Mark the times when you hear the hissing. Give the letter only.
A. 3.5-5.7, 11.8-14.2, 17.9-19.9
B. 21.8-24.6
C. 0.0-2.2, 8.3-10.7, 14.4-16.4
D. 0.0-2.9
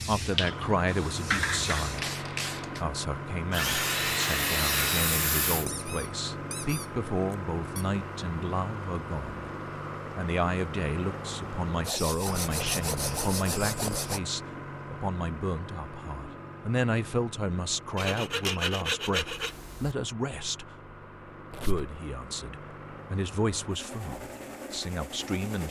D.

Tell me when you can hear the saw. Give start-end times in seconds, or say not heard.
3.5-5.7, 11.8-14.2, 17.9-19.9.